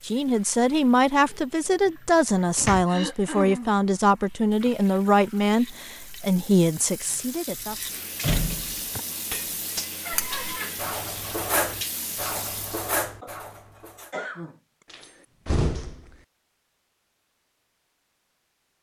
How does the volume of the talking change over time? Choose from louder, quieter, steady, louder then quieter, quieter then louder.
steady.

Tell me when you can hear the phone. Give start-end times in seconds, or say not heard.
not heard.